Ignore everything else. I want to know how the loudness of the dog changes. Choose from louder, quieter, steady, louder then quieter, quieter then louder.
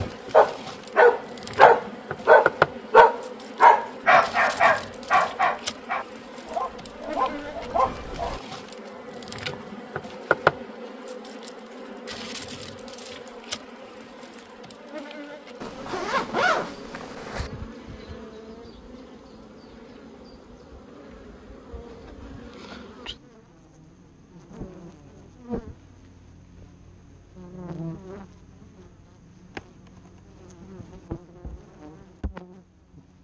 quieter.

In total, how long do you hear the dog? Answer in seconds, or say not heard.
8 s.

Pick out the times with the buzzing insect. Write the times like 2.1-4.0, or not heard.
0.0-33.1.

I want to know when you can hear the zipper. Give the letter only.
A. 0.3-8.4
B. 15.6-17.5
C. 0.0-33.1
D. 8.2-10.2
B.